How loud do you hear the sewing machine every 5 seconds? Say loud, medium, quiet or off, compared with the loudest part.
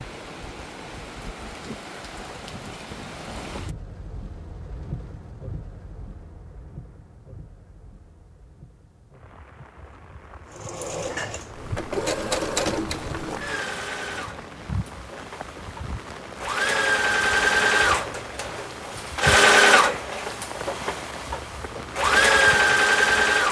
off, off, medium, loud, loud.